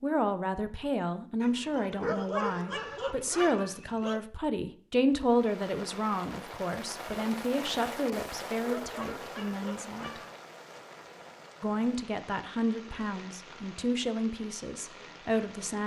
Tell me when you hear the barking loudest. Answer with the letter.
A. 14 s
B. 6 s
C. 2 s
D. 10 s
C.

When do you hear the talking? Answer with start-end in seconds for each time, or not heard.
0.0-10.2, 11.6-15.8.